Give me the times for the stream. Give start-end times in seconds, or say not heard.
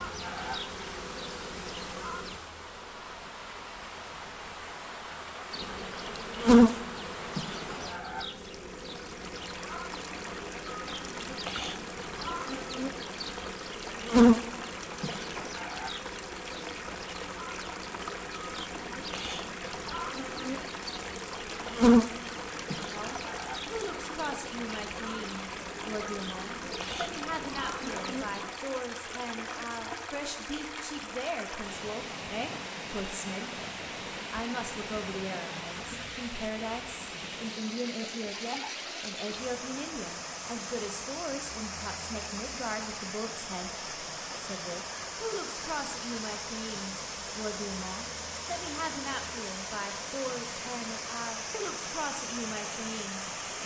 0.0-53.6.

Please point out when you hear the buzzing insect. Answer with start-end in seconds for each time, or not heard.
0.0-2.4, 5.5-28.5.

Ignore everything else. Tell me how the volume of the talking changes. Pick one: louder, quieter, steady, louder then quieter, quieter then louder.
steady.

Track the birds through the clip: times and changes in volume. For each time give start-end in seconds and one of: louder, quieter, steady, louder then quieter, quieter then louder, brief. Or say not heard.
not heard.